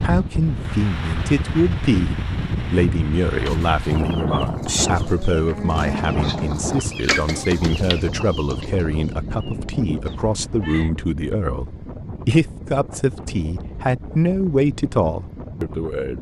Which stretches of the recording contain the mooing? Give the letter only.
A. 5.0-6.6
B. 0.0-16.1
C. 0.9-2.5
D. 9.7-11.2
A.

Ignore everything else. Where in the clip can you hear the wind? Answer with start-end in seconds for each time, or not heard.
0.0-16.1.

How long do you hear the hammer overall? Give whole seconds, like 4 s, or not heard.
not heard.